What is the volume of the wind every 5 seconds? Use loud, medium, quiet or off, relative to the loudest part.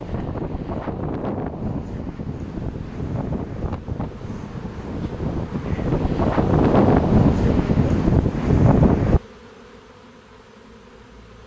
medium, loud, off.